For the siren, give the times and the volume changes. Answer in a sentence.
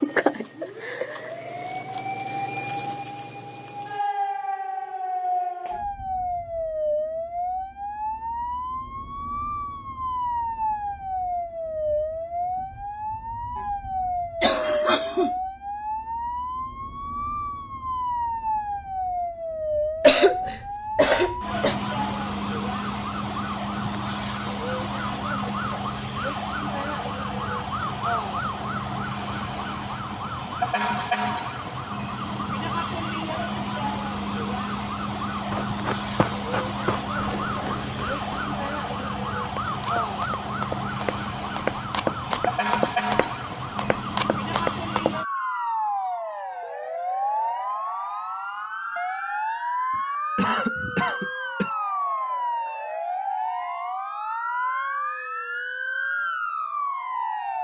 The siren can be heard from 0.0 to 57.5 s, at a steady volume.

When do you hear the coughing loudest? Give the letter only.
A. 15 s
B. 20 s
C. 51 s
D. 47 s
B.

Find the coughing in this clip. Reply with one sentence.
You can hear the coughing from 14.4 to 15.3 s, from 20.0 to 21.8 s and from 49.9 to 51.7 s.